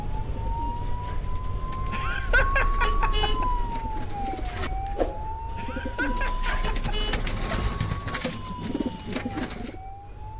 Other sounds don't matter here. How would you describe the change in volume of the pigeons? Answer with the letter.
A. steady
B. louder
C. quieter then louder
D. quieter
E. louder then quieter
B.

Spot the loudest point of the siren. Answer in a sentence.
The loudest moment of the siren is at 3 seconds.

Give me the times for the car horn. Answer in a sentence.
You can hear the car horn from 2.2 to 3.7 s and from 6.0 to 7.2 s.